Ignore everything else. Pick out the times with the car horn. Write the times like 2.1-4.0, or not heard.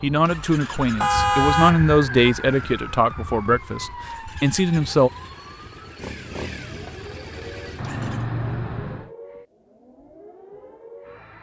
1.0-2.4, 7.8-9.1.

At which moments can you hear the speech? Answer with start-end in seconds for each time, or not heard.
0.0-5.1.